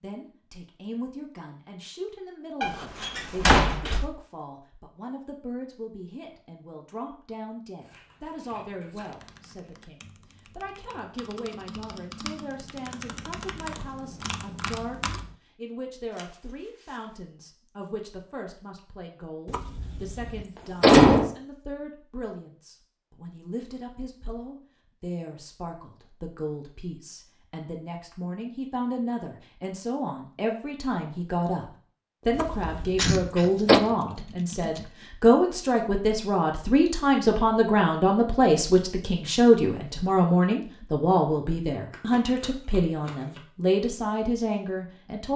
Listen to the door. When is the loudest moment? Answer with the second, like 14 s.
21 s.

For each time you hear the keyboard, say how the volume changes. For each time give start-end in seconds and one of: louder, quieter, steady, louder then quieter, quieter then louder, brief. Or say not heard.
9.1-15.3 louder
32.9-35.0 brief.